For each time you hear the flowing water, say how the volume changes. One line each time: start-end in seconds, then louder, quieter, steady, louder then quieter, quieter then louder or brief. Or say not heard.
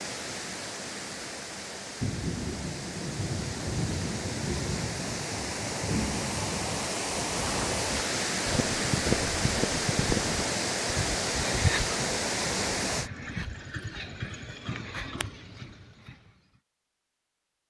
0.0-13.1 louder.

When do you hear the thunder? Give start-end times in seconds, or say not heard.
2.0-6.9.